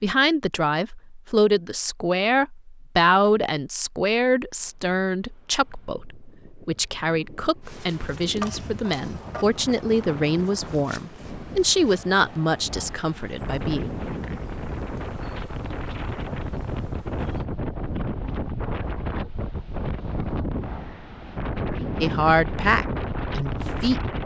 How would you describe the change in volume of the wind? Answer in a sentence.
The volume of the wind goes up.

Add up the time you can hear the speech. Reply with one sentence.
The speech can be heard for 16 seconds in total.